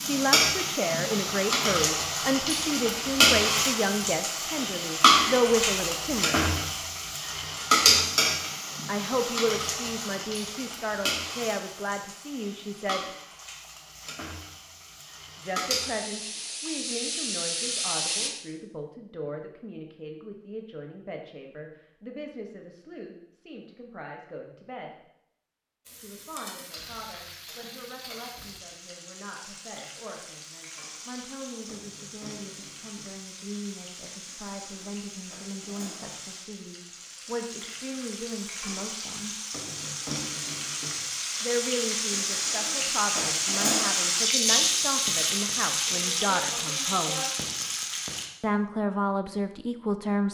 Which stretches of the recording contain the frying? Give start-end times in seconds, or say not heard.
0.0-18.3, 25.9-48.3.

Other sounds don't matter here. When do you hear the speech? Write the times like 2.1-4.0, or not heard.
0.0-6.8, 8.8-13.1, 15.3-24.9, 25.9-39.4, 41.4-47.2, 48.4-50.3.